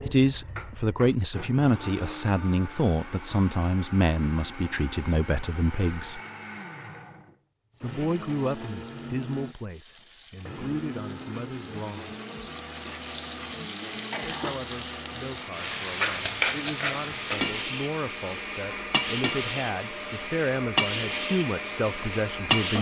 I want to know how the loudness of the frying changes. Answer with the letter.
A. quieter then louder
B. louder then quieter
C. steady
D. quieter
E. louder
E.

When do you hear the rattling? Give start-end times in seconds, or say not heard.
16.0-17.1.